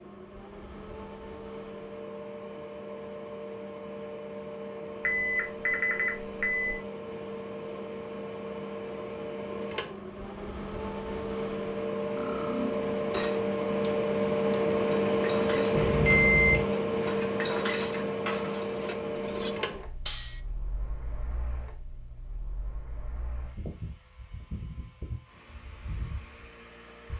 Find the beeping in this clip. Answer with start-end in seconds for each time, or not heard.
5.0-6.8, 15.8-16.6.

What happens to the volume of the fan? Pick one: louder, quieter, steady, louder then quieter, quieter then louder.
louder then quieter.